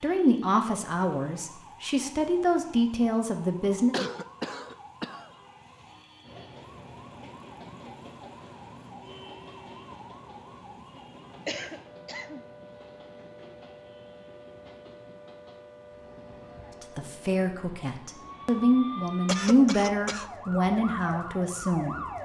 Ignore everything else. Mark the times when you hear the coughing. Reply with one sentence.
You can hear the coughing from 3.9 to 5.3 s, from 11.4 to 12.4 s and from 19.1 to 20.2 s.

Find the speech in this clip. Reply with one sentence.
The speech can be heard from 0.0 to 4.0 s and from 16.8 to 21.9 s.